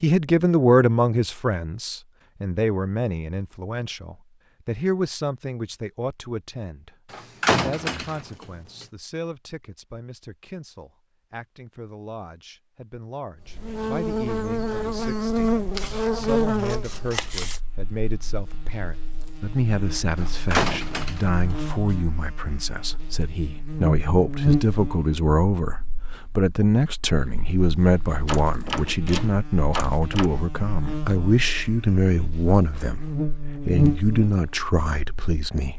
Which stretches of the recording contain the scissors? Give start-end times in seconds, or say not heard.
15.7-17.6.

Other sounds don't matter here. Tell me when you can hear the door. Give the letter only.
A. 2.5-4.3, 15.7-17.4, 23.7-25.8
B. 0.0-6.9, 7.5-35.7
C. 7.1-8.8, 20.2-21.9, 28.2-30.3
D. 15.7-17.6
C.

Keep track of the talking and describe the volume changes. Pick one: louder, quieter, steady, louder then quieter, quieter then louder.
quieter then louder.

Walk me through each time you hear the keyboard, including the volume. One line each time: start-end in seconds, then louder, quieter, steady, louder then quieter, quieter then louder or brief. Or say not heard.
not heard.